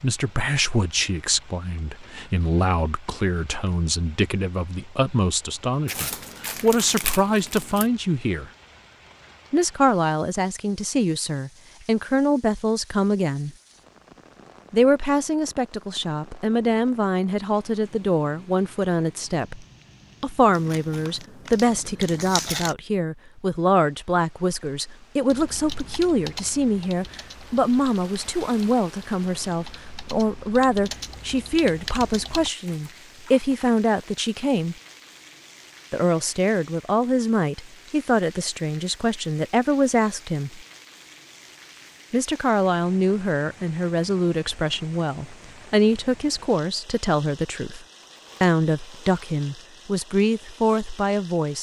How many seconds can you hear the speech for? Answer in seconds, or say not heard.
47 s.